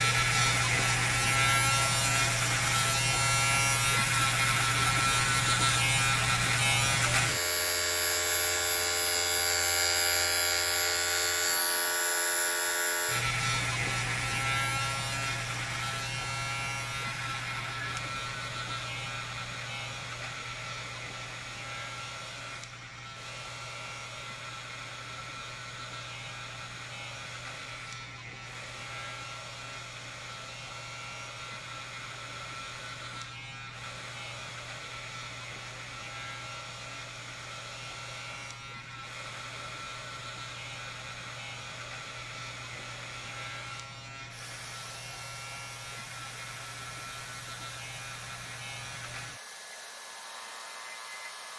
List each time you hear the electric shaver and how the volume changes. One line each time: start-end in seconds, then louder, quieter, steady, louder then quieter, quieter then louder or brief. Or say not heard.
0.0-51.5 quieter.